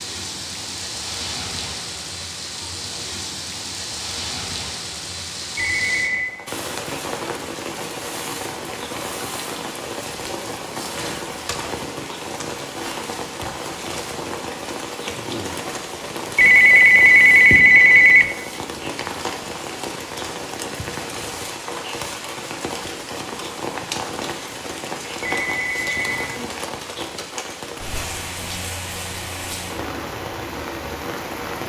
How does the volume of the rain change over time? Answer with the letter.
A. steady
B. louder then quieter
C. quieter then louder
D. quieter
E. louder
A.